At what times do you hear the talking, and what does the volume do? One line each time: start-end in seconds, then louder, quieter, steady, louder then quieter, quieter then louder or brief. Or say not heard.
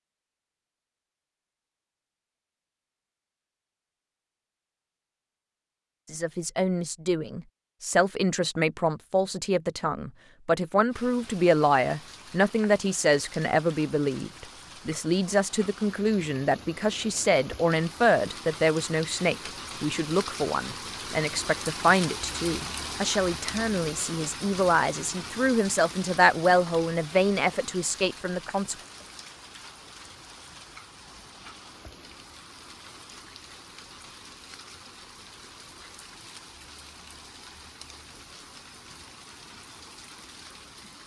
6.1-28.8 steady.